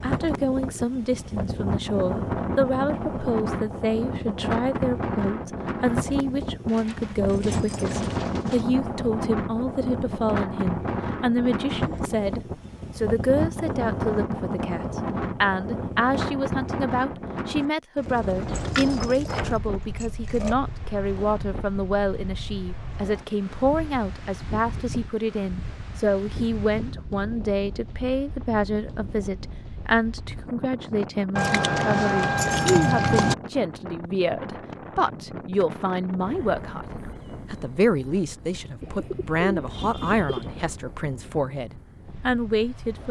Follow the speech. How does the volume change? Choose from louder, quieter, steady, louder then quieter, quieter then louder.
steady.